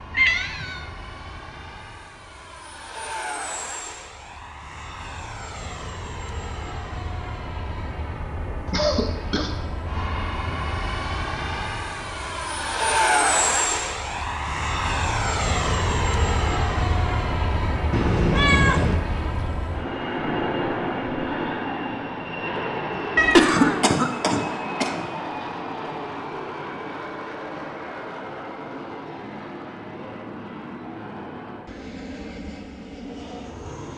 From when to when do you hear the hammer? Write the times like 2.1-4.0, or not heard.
not heard.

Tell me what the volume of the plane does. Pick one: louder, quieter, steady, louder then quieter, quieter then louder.
louder then quieter.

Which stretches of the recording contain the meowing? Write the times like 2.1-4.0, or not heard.
0.1-0.8, 17.9-19.0, 23.1-23.9.